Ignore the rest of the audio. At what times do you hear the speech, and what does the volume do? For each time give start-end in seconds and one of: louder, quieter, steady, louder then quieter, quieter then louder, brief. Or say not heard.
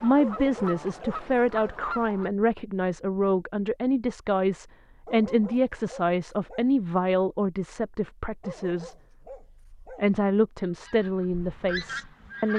0.0-8.9 steady
9.8-12.5 brief.